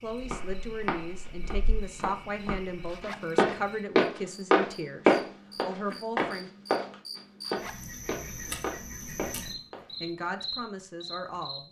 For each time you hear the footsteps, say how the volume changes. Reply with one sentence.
The footsteps can be heard from 0.1 to 9.8 s, getting louder then quieter.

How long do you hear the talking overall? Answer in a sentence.
The talking can be heard for 9 seconds in total.